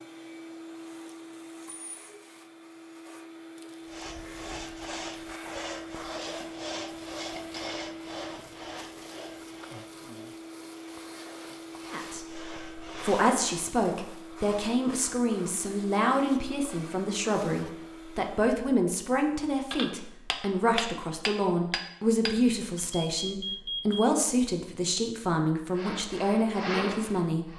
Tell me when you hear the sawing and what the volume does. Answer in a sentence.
You can hear the sawing from 3.9 to 13.3 s, getting quieter; and briefly from 25.8 to 27.5 s.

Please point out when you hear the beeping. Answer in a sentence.
You can hear the beeping from 22.8 to 24.1 s.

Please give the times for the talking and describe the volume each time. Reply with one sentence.
The talking can be heard from 11.9 to 27.5 s, at a steady volume.